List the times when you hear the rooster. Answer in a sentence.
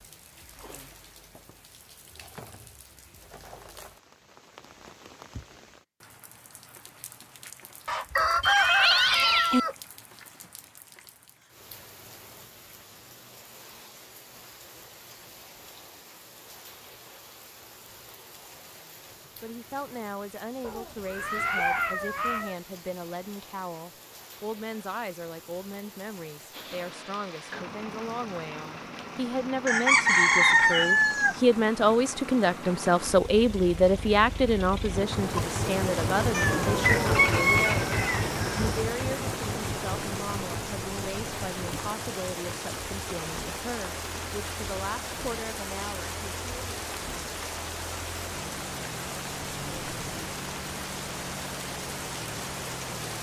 The rooster can be heard from 7.8 to 9.8 s, from 29.6 to 31.4 s and from 36.8 to 38.8 s.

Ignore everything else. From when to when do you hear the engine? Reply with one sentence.
You can hear the engine from 26.5 to 53.1 s.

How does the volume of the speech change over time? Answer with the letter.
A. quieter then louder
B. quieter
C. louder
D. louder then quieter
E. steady
D.